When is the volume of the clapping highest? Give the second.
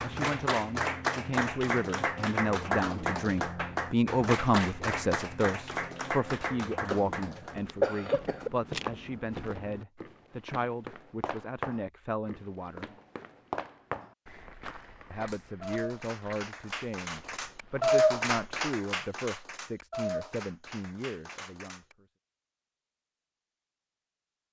18 s.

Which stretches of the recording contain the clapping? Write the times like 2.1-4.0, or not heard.
0.0-7.7, 15.2-21.9.